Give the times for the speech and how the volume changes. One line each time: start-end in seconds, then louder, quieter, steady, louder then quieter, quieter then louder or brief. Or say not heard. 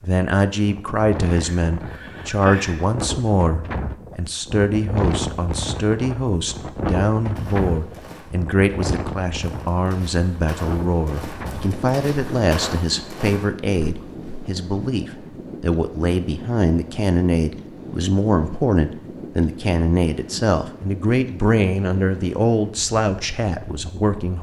0.0-24.3 steady.